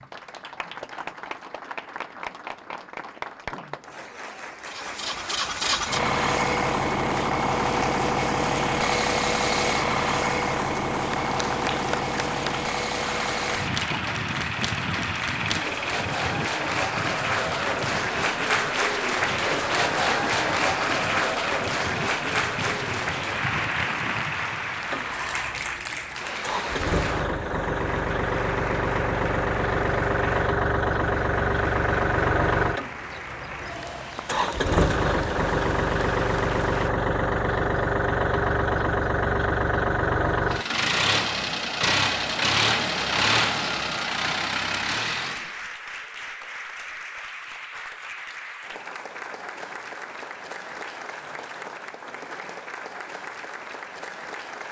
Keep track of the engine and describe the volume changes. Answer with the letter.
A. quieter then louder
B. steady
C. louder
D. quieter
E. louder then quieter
A.